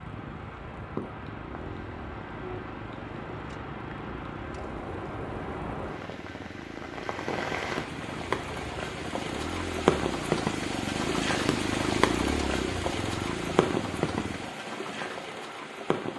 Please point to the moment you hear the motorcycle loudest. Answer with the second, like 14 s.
12 s.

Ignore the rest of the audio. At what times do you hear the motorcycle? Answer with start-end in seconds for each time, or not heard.
0.0-14.6.